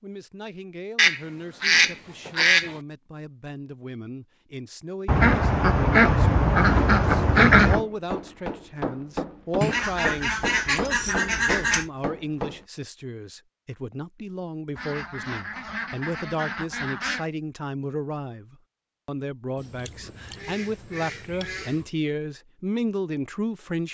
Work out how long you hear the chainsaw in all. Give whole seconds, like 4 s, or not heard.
not heard.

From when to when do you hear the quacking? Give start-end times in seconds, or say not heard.
0.9-2.8, 5.0-7.8, 9.6-11.9, 14.8-17.2, 19.6-21.9.